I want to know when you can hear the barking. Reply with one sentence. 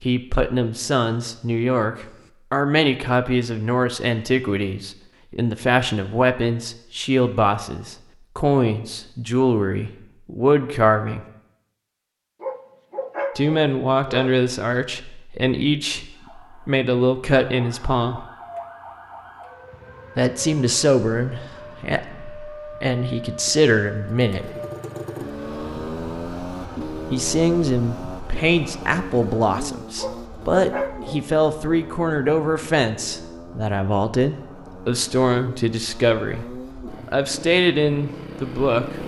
The barking can be heard from 12.4 to 14.4 s and from 29.9 to 31.2 s.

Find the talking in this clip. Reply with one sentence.
You can hear the talking from 0.0 to 11.2 s, from 13.3 to 18.2 s, from 20.1 to 24.5 s and from 27.1 to 39.0 s.